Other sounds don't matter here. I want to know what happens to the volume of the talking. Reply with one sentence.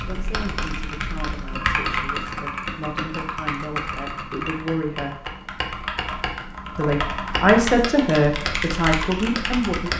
The loudness of the talking goes up.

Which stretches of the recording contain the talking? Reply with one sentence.
You can hear the talking from 0.1 to 5.3 s and from 6.8 to 9.9 s.